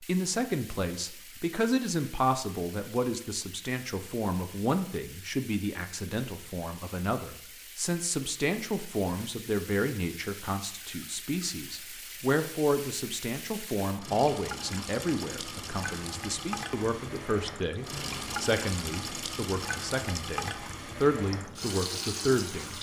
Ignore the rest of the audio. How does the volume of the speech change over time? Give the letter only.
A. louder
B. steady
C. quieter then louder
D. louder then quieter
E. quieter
B.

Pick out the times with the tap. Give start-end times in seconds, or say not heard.
0.0-22.7.